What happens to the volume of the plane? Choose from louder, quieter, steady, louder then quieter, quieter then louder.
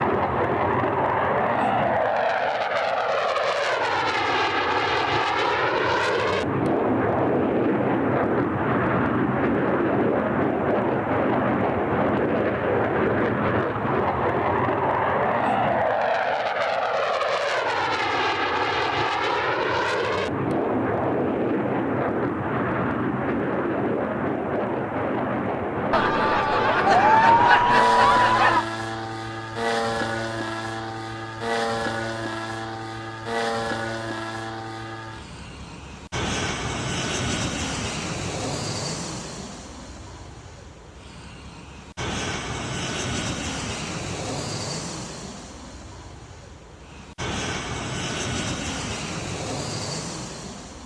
quieter.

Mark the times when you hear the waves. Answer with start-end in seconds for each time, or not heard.
not heard.